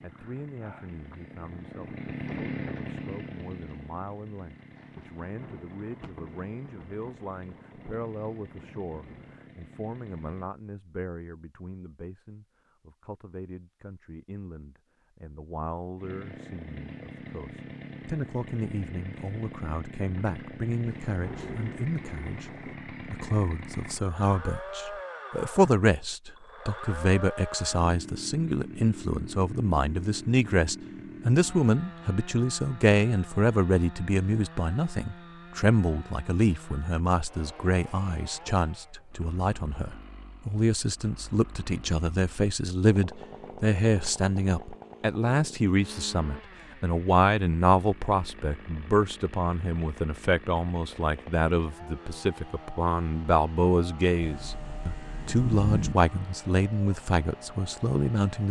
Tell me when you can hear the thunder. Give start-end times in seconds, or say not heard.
5.0-9.4, 20.9-22.8, 54.2-56.0.